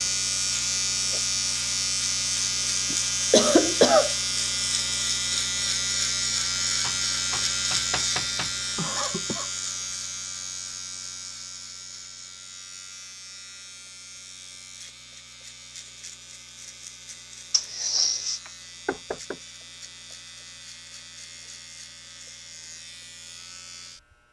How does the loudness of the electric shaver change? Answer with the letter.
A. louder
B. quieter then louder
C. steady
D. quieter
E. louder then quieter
D.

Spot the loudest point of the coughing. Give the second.
4 s.